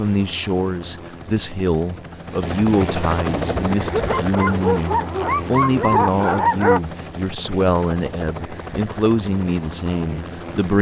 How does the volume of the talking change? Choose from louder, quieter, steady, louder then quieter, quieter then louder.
steady.